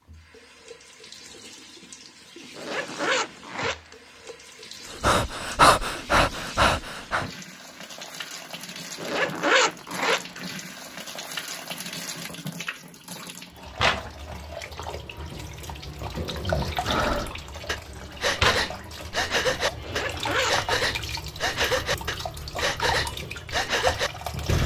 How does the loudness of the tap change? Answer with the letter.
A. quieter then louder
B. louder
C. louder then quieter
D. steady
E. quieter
B.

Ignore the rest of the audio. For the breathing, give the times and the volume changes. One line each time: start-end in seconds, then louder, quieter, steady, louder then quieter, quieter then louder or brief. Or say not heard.
4.9-7.2 brief
16.4-24.6 steady.